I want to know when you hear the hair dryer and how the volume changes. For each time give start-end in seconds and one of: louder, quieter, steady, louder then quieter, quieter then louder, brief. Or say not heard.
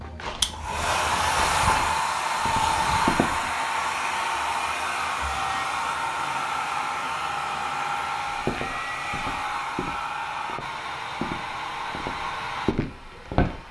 0.0-13.6 quieter.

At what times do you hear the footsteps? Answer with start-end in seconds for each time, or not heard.
0.0-3.5, 8.3-13.6.